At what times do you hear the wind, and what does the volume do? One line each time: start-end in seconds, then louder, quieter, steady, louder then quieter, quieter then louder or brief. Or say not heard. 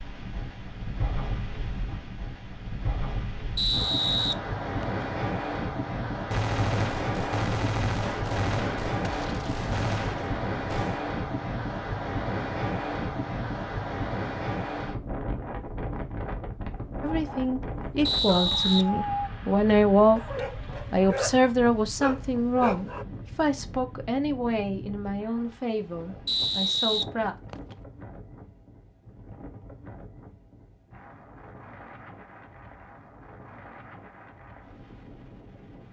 0.0-35.8 quieter.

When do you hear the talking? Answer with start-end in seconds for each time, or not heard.
17.0-20.2, 20.9-27.4.